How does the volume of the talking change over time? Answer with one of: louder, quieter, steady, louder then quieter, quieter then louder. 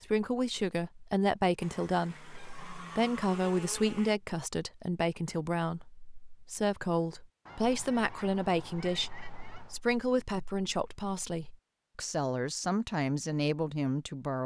steady.